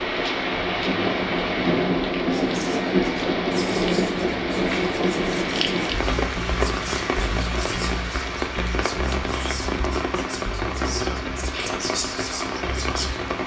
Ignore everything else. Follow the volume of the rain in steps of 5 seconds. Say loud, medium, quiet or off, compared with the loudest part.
loud, loud, medium.